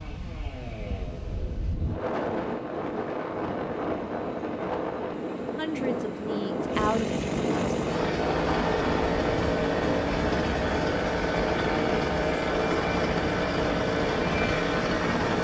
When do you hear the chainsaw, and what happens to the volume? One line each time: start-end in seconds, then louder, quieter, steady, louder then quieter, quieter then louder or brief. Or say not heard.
0.0-15.3 louder.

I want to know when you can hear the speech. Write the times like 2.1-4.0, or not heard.
5.5-7.2.